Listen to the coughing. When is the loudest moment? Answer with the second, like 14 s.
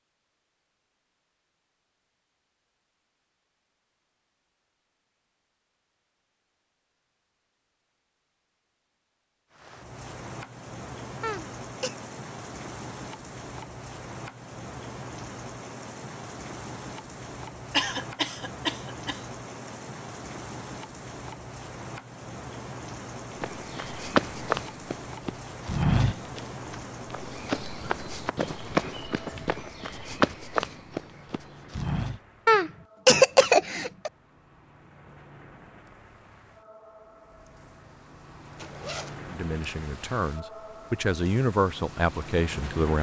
33 s.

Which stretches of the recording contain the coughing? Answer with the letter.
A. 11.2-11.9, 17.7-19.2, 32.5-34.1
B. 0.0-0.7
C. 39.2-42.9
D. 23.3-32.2
A.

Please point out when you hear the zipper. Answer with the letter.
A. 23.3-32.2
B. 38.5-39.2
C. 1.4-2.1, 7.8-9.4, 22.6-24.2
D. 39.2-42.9
B.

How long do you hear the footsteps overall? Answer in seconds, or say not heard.
9 s.